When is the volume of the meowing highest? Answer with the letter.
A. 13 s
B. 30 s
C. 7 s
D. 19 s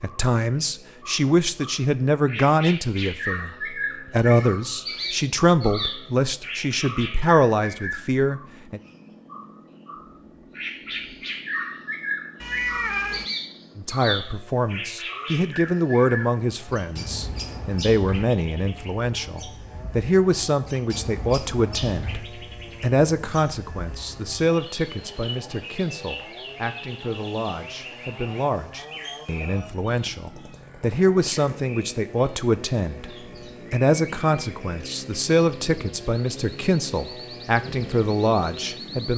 A.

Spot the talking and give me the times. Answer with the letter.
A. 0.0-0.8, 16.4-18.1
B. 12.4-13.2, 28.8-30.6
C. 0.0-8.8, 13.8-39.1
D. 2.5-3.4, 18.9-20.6
C.